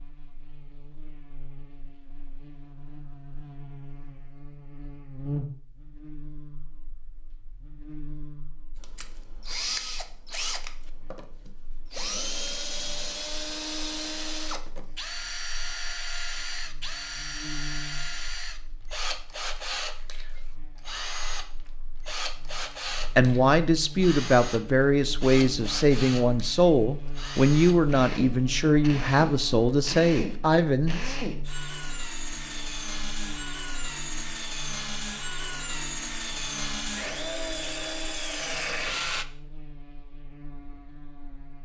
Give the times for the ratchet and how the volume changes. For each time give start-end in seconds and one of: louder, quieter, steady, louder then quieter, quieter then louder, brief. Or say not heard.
not heard.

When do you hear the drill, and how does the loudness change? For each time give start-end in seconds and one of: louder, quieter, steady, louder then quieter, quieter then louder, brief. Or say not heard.
8.8-39.2 steady.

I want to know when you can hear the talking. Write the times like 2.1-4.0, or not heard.
23.1-31.1.